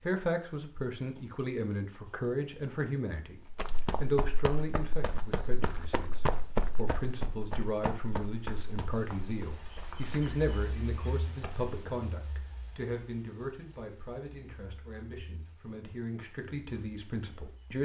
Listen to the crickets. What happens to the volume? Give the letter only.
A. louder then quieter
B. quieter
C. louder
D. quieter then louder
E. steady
A.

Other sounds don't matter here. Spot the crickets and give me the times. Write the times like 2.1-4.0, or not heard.
0.0-17.7.